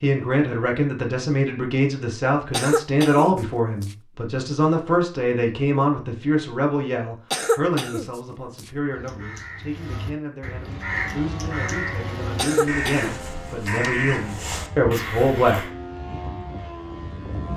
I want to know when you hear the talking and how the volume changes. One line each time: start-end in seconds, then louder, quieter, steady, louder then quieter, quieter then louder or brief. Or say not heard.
0.0-15.6 quieter then louder.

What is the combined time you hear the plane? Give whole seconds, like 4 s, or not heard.
7 s.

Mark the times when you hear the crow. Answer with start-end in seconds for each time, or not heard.
8.9-15.7.